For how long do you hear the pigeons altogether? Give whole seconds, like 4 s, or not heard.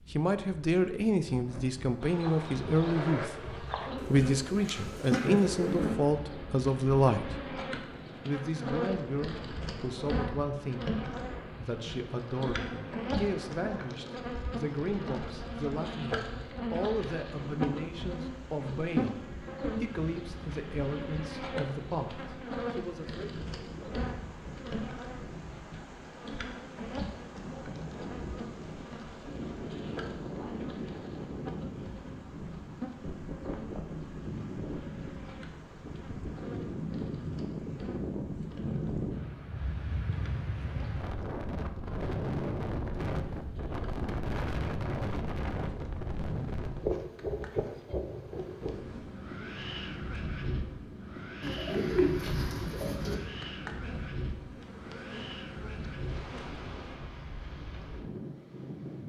4 s.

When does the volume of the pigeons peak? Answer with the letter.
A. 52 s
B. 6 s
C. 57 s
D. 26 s
A.